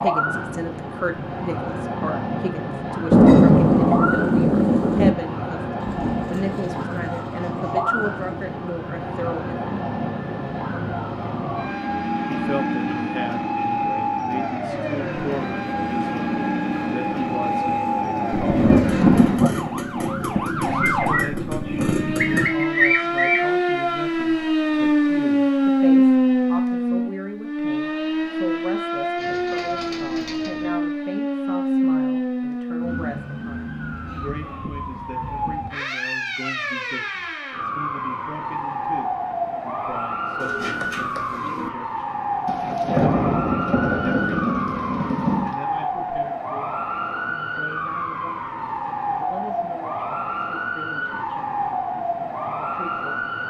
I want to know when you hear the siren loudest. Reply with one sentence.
The volume of the siren peaks at 26 seconds.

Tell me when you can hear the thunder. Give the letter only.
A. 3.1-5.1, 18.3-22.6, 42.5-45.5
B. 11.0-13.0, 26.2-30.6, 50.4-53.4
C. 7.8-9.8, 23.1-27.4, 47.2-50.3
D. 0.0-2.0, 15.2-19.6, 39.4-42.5
A.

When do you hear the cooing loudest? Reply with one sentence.
The loudest moment of the cooing is at 23 seconds.